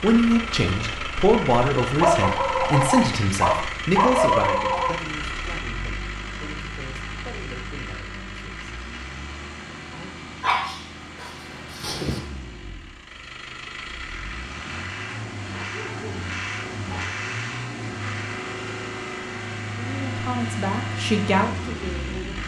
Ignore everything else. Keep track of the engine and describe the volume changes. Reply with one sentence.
The loudness of the engine goes down, then up.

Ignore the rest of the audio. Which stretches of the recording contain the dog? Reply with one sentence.
The dog can be heard from 2.0 to 4.9 s, from 10.4 to 12.2 s and from 15.7 to 17.1 s.